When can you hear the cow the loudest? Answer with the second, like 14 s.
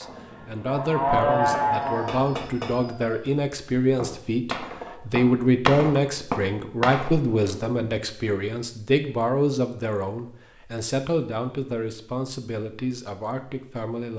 1 s.